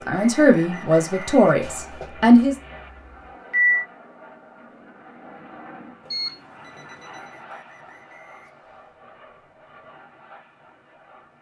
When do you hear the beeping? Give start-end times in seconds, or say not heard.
1.6-3.9, 6.0-7.2.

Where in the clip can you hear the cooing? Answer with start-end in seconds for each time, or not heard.
not heard.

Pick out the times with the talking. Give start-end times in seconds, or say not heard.
0.1-2.5.